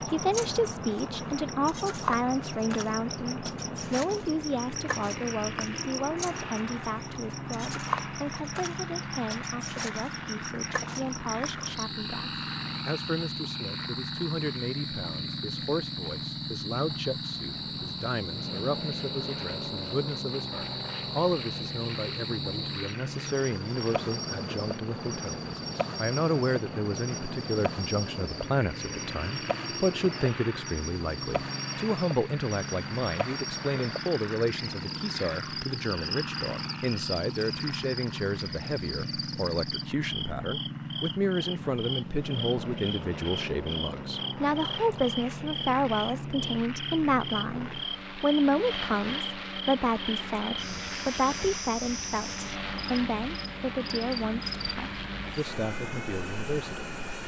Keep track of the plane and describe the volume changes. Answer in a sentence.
The volume of the plane stays about the same.